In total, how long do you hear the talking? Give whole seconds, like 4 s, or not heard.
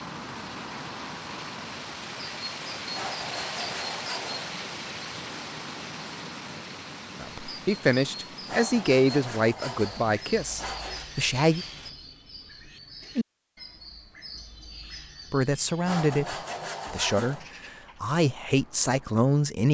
9 s.